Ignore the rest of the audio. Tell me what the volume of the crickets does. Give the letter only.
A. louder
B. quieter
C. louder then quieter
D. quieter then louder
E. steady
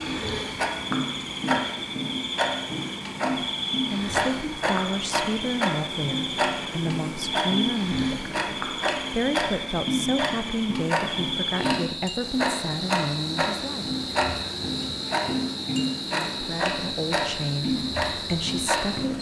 E.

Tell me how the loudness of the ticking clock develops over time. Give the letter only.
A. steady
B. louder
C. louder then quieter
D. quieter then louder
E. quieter
A.